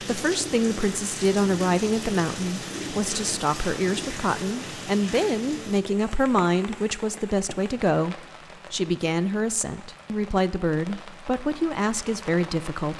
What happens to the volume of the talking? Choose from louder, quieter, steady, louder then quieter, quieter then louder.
steady.